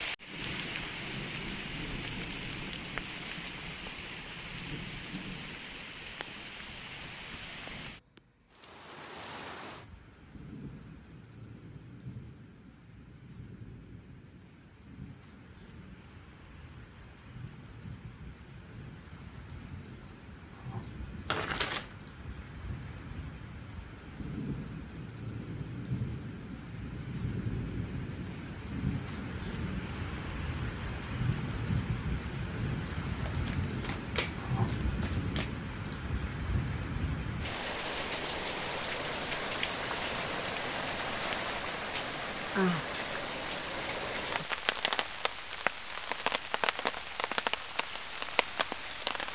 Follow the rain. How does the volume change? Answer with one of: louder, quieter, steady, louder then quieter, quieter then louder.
quieter then louder.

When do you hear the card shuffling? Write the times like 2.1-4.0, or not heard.
21.2-21.9, 32.9-35.5.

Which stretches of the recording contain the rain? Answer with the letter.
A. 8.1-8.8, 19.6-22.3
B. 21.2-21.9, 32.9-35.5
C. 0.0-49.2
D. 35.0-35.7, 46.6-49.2
C.